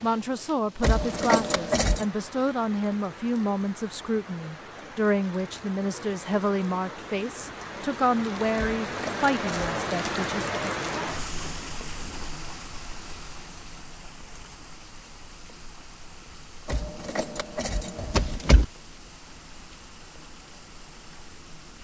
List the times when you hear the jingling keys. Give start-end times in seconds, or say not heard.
0.8-2.0, 8.6-9.7, 16.6-18.6.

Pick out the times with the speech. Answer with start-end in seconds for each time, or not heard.
0.0-10.4.